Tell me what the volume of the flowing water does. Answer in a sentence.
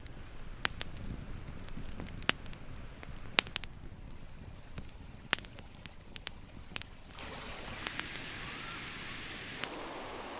The loudness of the flowing water goes up.